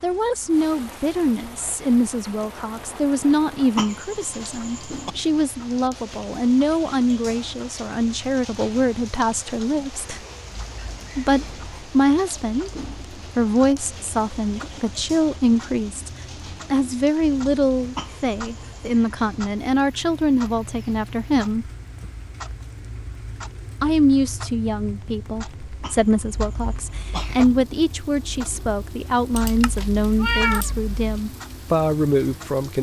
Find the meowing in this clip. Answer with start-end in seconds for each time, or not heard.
29.3-31.0.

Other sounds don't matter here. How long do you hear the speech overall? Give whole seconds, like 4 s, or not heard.
29 s.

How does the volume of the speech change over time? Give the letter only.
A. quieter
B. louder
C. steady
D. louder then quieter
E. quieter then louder
C.